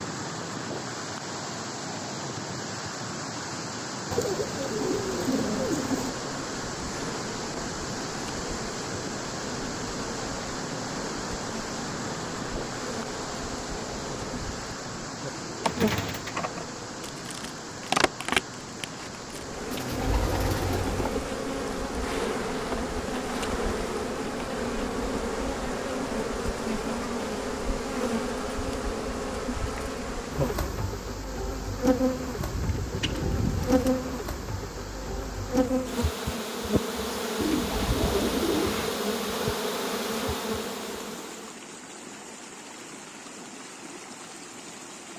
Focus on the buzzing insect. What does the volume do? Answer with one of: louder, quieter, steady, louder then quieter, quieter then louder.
louder.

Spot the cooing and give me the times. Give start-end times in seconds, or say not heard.
4.1-6.1, 15.5-16.4, 19.7-21.2, 32.4-34.0, 37.4-39.0.